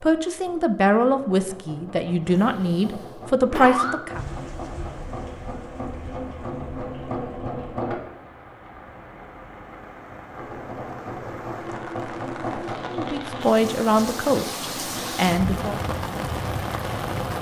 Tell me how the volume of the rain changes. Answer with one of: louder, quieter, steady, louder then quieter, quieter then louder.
louder.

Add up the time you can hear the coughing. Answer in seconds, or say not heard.
2 s.